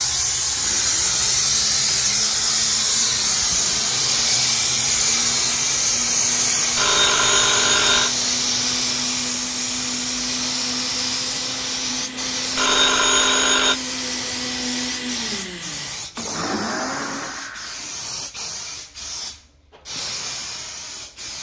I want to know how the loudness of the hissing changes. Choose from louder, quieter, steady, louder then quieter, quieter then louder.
quieter.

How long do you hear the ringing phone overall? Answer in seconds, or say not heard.
3 s.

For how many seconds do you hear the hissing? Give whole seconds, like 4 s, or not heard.
21 s.